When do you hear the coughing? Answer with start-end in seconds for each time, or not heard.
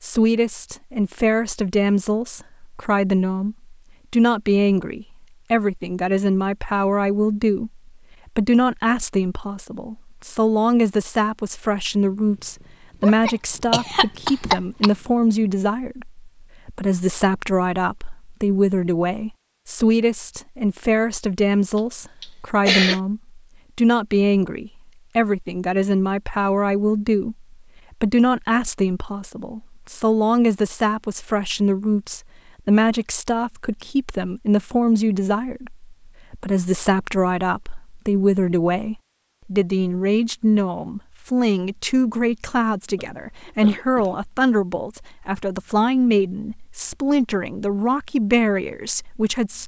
13.0-14.9, 21.8-23.0, 43.0-44.2.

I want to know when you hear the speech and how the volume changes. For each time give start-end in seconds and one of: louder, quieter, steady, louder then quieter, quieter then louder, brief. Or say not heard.
0.0-49.6 steady.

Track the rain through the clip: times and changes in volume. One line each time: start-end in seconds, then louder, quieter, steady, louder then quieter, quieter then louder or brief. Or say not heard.
not heard.